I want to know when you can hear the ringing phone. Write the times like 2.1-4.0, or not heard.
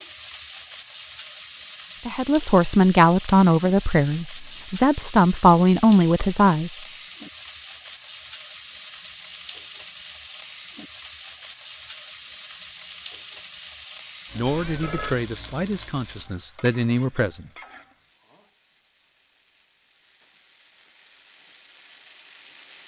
14.4-15.2.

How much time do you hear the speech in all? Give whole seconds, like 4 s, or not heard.
8 s.